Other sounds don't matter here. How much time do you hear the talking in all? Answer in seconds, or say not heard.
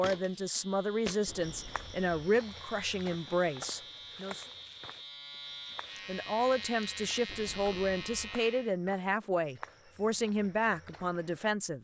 10 s.